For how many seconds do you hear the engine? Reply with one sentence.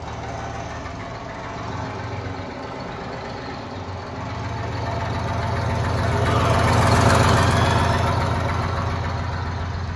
You can hear the engine for 10 seconds altogether.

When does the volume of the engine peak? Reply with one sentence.
The volume of the engine peaks at 7 seconds.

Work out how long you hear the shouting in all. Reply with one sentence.
The shouting can be heard for 2 seconds in total.